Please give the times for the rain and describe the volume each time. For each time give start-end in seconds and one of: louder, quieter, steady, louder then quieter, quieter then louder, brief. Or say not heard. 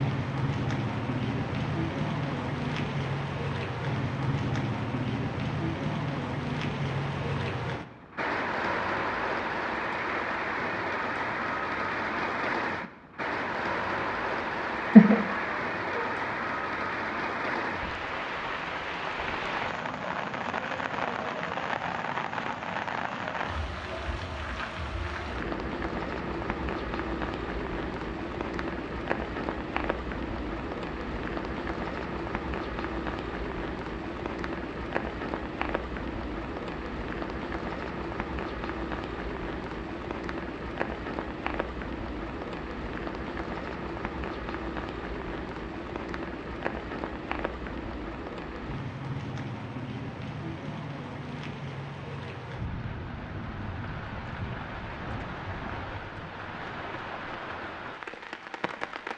0.0-59.1 quieter.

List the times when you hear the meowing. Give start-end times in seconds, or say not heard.
14.8-16.1.